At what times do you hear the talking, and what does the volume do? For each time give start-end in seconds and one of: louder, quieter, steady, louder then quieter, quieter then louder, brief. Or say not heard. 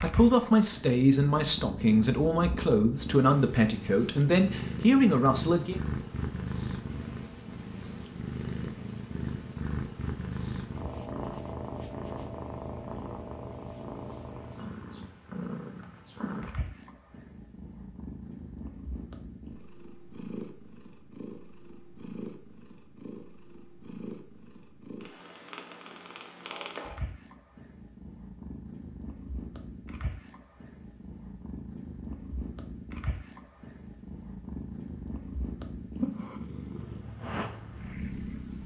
0.0-5.8 steady.